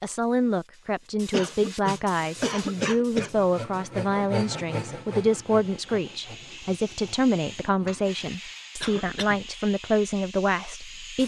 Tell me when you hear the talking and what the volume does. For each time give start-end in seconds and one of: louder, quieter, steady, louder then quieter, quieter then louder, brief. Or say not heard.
0.0-11.2 steady.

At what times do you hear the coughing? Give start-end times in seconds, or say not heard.
1.3-3.3, 8.8-9.4.